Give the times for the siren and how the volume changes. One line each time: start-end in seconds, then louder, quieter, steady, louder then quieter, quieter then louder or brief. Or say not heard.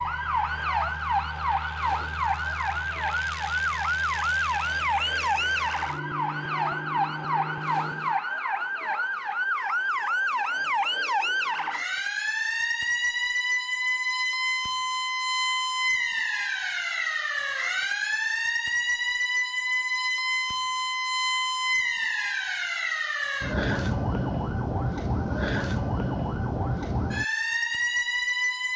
0.0-28.7 steady.